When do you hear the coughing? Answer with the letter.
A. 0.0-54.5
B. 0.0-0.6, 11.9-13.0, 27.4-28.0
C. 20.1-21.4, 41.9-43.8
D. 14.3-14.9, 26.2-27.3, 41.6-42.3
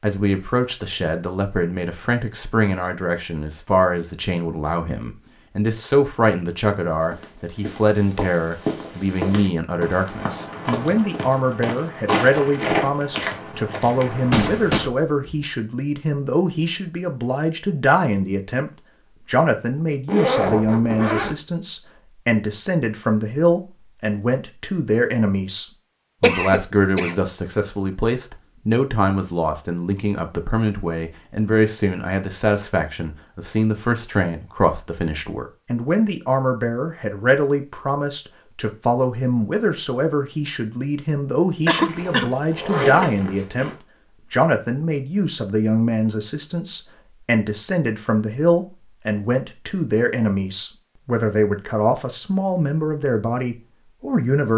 D.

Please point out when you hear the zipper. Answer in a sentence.
You can hear the zipper from 20.1 to 21.4 s and from 41.9 to 43.8 s.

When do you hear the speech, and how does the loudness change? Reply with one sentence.
You can hear the speech from 0.0 to 54.5 s, at a steady volume.